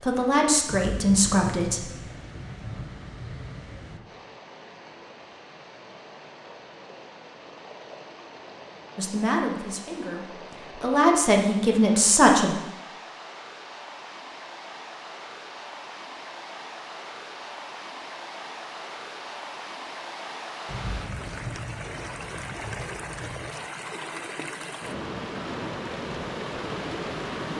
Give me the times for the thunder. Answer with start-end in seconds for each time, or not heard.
0.7-4.0, 20.6-23.5.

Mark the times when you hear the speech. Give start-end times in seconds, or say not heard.
0.0-1.9, 8.9-12.6.